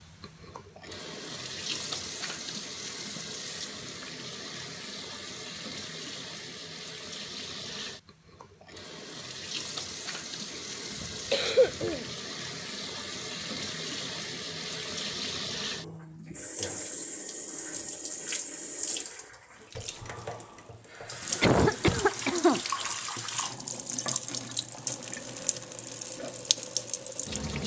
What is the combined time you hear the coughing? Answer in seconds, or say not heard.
3 s.